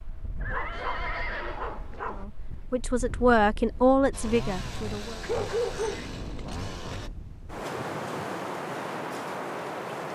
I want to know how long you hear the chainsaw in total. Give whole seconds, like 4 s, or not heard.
3 s.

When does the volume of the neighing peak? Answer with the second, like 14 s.
1 s.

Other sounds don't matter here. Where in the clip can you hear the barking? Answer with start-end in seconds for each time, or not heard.
0.5-2.2, 5.2-6.0.